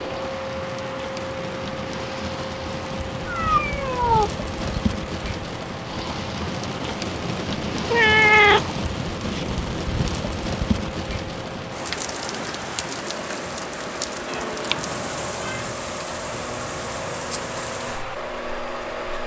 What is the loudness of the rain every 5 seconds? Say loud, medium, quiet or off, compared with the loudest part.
loud, loud, loud, medium.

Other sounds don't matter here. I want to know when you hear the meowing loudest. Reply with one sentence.
The volume of the meowing peaks at 8 seconds.